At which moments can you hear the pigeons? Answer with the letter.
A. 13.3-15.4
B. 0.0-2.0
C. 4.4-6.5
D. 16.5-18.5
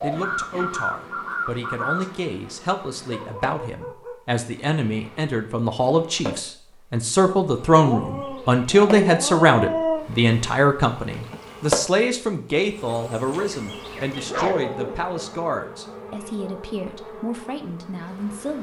B.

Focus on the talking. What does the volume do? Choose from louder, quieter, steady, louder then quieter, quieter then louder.
louder then quieter.